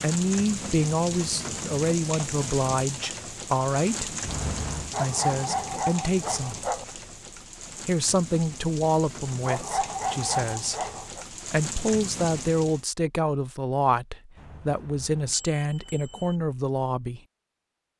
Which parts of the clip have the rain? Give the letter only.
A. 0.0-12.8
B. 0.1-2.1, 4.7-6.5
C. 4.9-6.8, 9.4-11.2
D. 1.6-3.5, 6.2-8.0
A.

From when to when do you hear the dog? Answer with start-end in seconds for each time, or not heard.
4.9-6.8, 9.4-11.2.